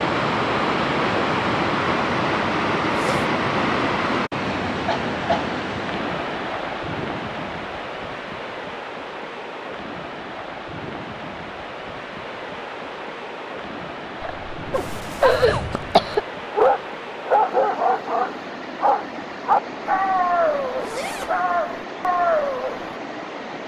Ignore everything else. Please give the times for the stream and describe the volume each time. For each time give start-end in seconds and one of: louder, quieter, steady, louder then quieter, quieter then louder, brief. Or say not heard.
0.0-23.6 quieter.